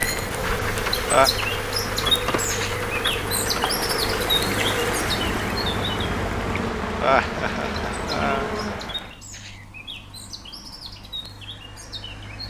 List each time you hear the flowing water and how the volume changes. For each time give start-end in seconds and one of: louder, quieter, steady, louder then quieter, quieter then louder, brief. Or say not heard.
0.0-9.2 louder then quieter.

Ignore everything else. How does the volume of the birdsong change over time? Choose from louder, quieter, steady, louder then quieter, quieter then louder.
quieter.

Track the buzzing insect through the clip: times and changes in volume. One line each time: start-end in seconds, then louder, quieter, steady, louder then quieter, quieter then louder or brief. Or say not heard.
0.0-9.0 steady.